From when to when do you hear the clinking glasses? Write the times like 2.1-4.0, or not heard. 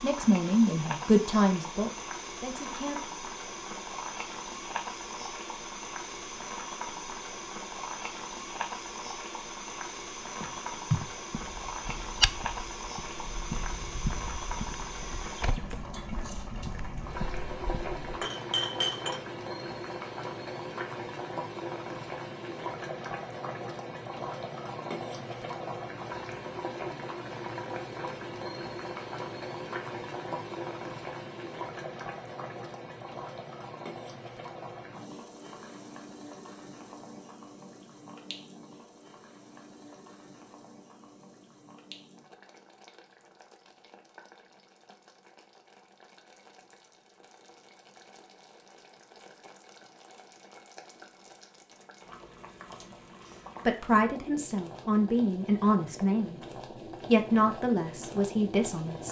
18.2-19.2.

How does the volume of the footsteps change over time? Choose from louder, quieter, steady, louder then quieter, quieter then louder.
quieter.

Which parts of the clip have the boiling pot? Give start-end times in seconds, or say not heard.
0.0-59.0.